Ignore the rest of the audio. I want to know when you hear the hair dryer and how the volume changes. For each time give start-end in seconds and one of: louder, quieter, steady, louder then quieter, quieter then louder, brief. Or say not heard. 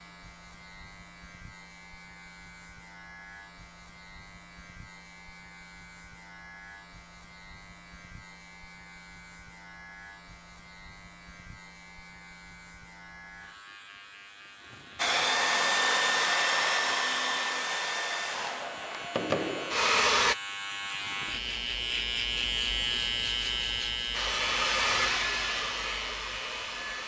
14.9-20.4 quieter then louder
24.1-27.0 brief.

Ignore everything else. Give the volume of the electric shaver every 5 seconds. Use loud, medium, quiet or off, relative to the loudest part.
quiet, quiet, quiet, medium, loud, medium.